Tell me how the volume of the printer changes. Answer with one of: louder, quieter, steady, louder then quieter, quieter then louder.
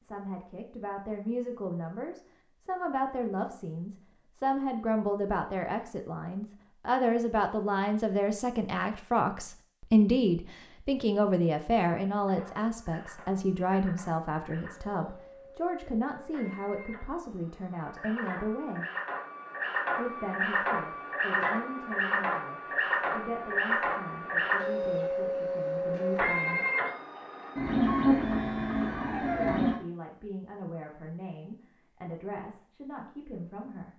louder.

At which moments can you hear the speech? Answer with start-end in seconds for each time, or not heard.
0.0-18.9, 19.9-26.6, 29.2-33.9.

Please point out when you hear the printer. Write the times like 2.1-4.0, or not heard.
12.2-29.8.